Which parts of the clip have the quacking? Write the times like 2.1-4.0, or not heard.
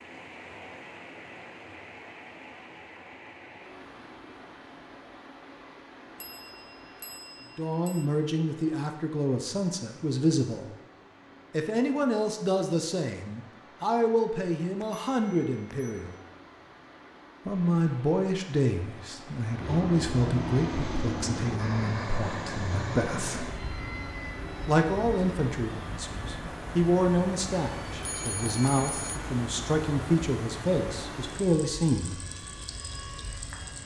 not heard.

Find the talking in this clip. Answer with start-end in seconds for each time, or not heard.
7.5-10.7, 11.5-16.1, 17.4-23.5, 24.6-32.2.